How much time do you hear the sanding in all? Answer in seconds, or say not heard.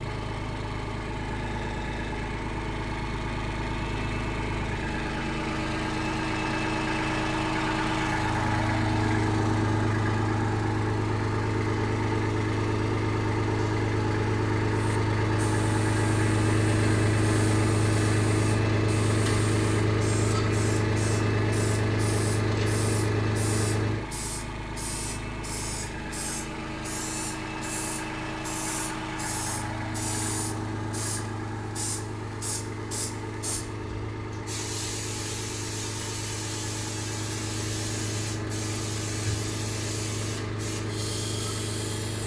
not heard.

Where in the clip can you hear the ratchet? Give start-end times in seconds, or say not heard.
not heard.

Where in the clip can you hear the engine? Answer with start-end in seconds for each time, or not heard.
0.0-42.2.